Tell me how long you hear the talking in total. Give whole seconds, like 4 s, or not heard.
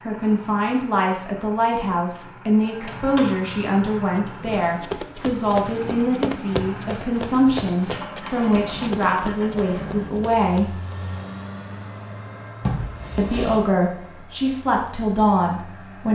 14 s.